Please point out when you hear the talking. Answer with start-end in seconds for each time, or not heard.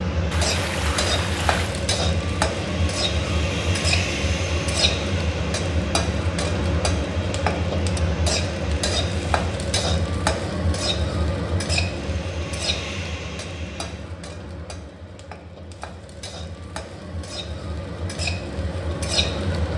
not heard.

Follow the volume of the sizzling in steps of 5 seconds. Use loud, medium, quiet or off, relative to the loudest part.
loud, loud, loud, medium.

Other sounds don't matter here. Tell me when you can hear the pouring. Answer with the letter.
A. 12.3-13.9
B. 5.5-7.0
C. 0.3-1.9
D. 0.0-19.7
C.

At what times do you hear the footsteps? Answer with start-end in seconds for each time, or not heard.
not heard.